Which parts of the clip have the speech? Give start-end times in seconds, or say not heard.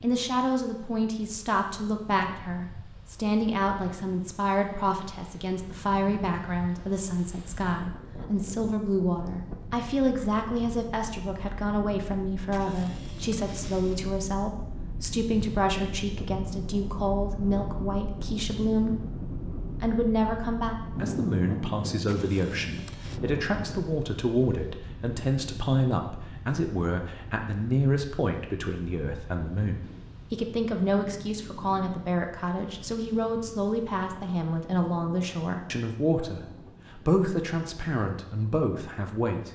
0.0-19.0, 19.8-39.4.